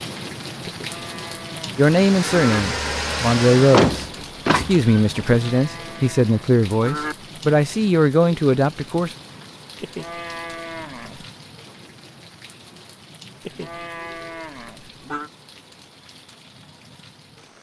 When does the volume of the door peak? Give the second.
4 s.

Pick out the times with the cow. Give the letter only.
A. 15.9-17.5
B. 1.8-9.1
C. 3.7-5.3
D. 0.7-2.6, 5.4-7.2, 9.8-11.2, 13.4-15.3
D.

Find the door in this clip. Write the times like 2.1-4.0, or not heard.
3.7-5.3.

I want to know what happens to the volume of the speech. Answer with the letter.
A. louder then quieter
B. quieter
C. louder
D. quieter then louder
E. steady
E.